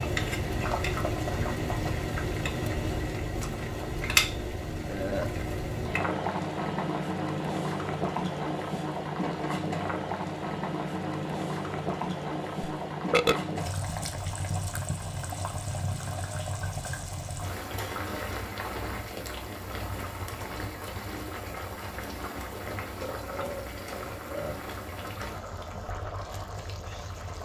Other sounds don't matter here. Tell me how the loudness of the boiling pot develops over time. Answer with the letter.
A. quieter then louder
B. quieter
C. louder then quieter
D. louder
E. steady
B.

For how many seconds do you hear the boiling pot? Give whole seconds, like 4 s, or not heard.
27 s.